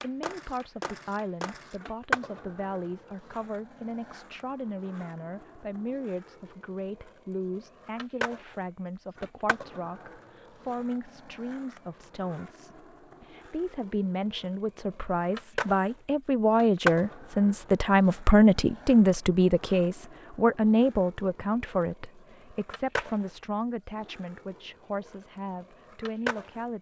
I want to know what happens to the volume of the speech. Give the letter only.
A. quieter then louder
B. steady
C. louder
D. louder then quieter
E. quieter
D.